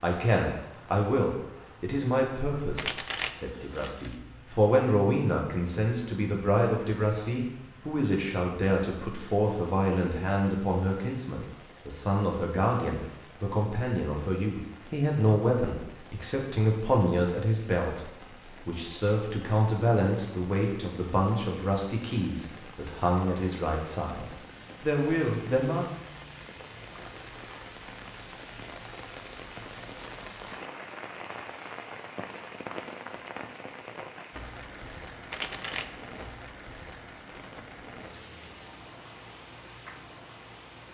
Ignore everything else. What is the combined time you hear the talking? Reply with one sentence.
The talking can be heard for 26 seconds in total.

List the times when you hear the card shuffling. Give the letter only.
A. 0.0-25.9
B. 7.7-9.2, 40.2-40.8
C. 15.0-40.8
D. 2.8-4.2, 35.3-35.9
D.